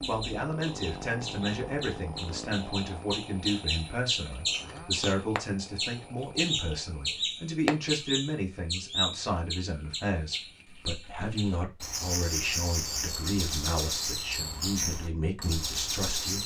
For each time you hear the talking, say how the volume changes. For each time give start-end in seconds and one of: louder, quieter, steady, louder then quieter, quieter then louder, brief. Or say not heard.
0.1-16.4 steady.